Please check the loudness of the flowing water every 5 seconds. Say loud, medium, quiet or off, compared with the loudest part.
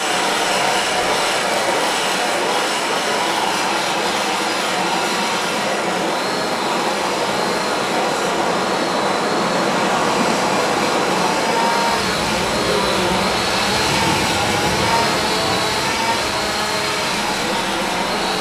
medium, loud, loud, medium.